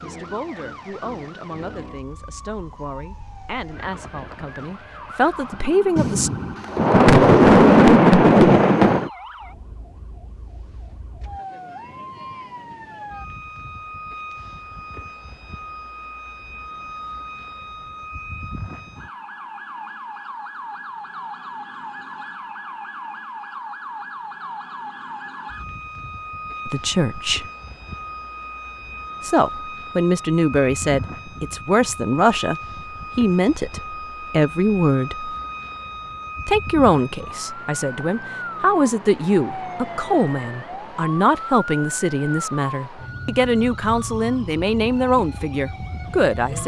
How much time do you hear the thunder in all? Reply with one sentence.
The thunder can be heard for 3 seconds in total.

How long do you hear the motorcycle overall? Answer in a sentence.
You can't hear the motorcycle here.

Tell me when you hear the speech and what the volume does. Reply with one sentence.
The speech can be heard from 0.0 to 6.3 s, getting louder; briefly from 26.6 to 27.4 s; from 29.2 to 35.4 s, at a steady volume; and from 36.5 to 46.6 s, at a steady volume.